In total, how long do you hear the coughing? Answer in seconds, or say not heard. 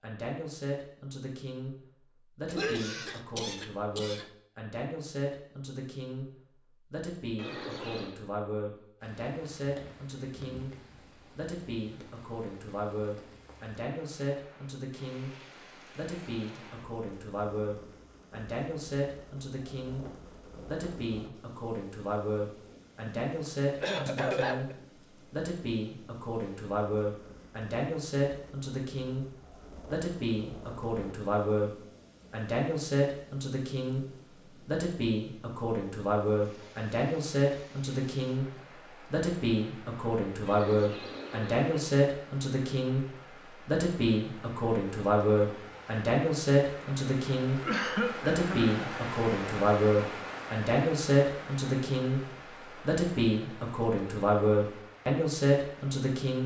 5 s.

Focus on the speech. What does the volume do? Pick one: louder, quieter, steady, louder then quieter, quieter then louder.
louder.